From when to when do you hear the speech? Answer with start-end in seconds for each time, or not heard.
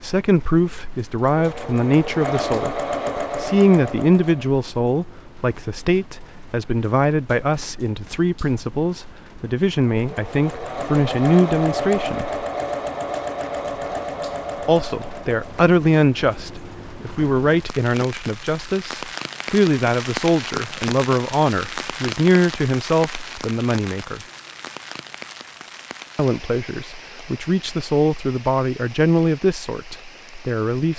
0.0-12.3, 14.7-24.2, 26.1-30.9.